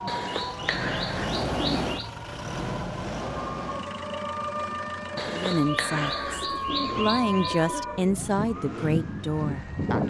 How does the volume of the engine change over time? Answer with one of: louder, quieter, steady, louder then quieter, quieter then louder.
quieter.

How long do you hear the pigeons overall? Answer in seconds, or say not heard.
5 s.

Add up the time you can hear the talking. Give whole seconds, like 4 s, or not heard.
5 s.